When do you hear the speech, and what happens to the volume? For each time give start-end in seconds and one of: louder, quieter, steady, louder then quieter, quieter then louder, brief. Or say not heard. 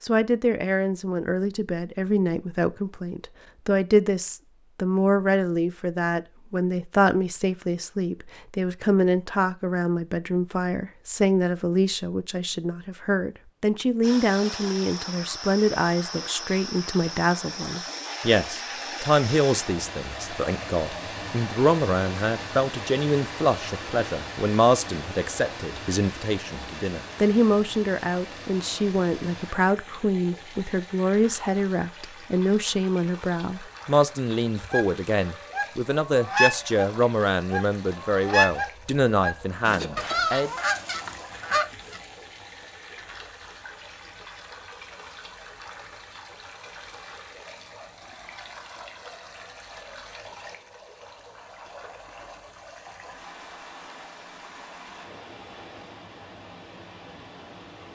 0.0-40.5 steady.